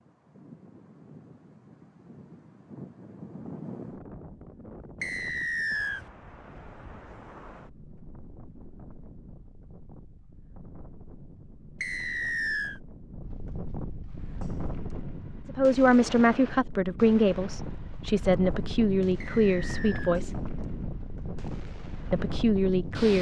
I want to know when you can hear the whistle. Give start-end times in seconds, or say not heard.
5.0-6.0, 11.8-12.8, 19.2-20.2.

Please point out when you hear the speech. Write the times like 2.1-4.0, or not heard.
15.4-20.3, 22.1-23.1.